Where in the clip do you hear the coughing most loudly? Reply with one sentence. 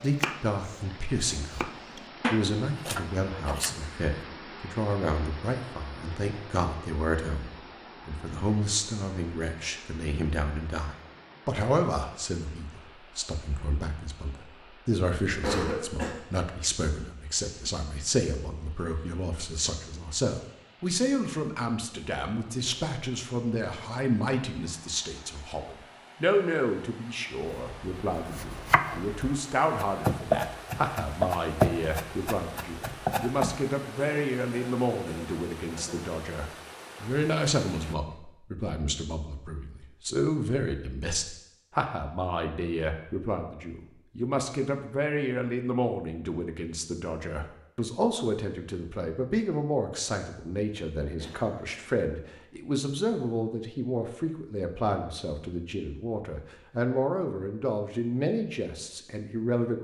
The loudest moment of the coughing is at 16 seconds.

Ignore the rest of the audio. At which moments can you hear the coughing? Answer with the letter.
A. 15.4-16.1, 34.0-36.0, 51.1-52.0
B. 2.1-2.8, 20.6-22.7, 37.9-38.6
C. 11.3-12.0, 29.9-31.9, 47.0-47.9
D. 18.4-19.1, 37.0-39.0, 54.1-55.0
A.